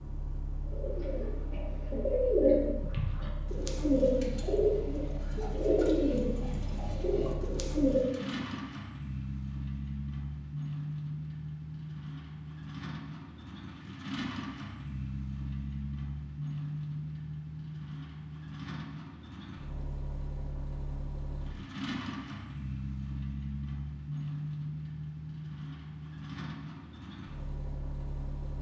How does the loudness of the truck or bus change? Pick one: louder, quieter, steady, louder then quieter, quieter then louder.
louder.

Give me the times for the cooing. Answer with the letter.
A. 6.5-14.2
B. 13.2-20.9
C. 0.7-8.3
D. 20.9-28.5
C.